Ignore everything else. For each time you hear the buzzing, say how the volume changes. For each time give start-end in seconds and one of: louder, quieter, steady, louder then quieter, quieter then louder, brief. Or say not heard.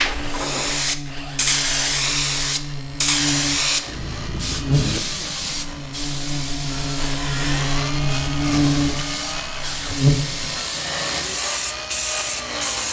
0.0-10.6 louder.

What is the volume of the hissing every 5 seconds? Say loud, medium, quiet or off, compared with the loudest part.
loud, medium, medium.